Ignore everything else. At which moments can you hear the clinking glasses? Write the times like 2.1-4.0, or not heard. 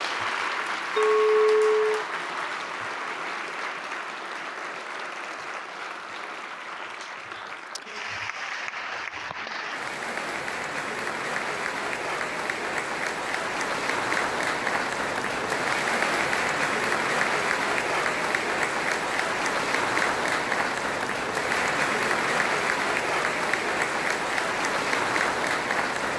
0.9-2.0.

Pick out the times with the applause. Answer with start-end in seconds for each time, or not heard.
0.0-26.1.